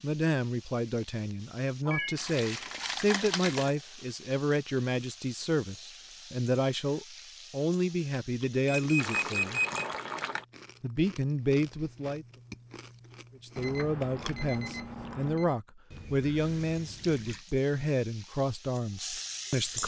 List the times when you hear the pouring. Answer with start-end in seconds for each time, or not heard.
2.1-3.8, 8.9-10.4, 15.9-17.4.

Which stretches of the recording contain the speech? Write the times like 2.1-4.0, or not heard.
0.0-9.6, 10.8-12.2, 13.4-19.8.